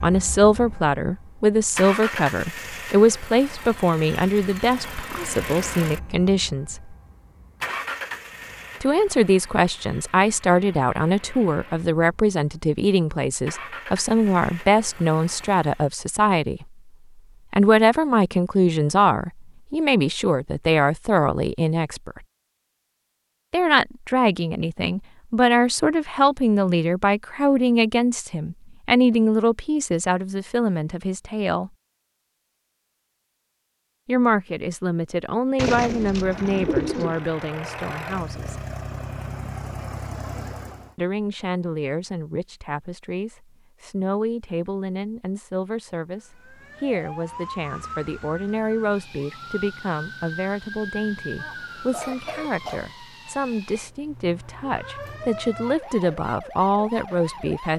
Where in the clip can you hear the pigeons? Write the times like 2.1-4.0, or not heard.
35.5-37.2.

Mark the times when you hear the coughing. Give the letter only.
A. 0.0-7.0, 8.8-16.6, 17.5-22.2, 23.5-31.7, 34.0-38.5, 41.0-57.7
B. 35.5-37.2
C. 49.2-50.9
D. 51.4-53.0
D.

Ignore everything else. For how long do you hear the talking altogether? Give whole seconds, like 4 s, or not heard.
49 s.